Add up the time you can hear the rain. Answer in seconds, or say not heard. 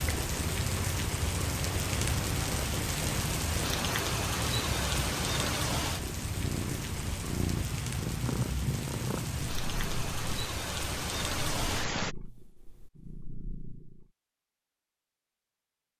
12 s.